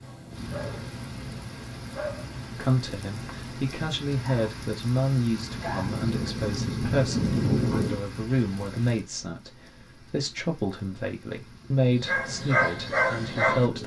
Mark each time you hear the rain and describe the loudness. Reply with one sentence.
You can hear the rain from 0.0 to 13.8 s, getting louder then quieter.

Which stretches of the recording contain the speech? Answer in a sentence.
The speech can be heard from 2.5 to 13.8 s.